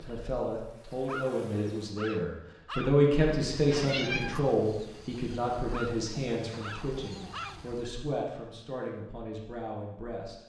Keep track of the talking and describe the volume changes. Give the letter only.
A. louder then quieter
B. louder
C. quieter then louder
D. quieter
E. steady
A.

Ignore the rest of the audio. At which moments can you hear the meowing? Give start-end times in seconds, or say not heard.
3.2-4.4.